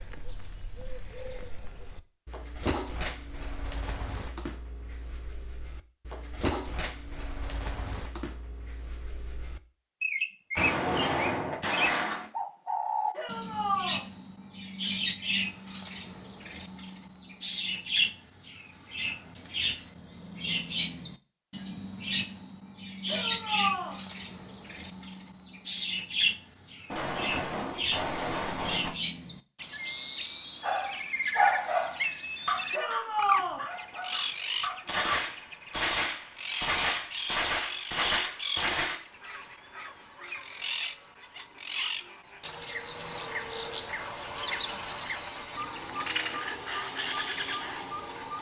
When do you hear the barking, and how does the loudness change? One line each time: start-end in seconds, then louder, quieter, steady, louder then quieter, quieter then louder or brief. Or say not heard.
30.6-35.0 quieter.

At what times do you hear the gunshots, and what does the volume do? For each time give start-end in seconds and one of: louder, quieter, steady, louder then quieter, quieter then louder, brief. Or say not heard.
10.6-12.3 brief
26.9-28.9 brief
34.9-39.0 steady.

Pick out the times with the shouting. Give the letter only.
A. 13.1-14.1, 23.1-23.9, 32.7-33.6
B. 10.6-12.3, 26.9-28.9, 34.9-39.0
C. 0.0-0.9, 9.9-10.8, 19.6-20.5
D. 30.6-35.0
A.